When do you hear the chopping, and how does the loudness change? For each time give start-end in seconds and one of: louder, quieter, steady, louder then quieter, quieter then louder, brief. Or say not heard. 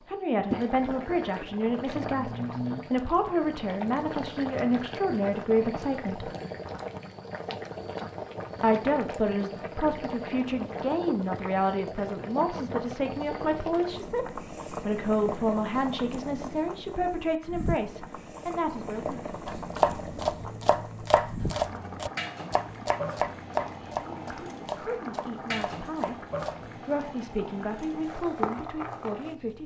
19.4-26.8 quieter.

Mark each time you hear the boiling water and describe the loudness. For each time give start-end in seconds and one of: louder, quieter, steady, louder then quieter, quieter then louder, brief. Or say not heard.
0.3-29.6 steady.